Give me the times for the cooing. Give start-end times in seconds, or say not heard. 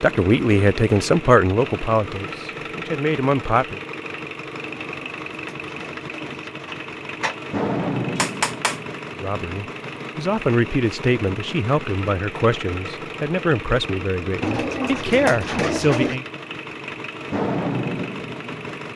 4.6-7.3, 14.4-16.1.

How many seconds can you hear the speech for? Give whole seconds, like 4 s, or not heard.
11 s.